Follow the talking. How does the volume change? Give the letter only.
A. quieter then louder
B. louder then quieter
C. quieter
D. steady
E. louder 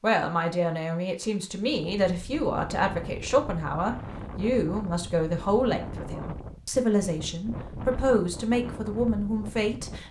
D.